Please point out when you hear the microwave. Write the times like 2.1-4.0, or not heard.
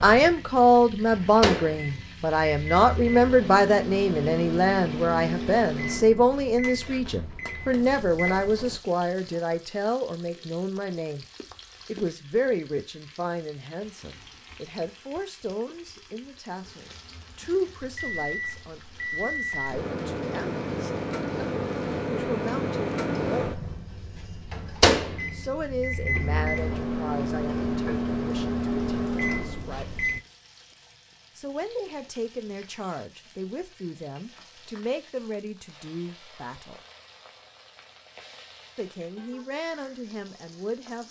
0.0-8.8, 17.9-30.2.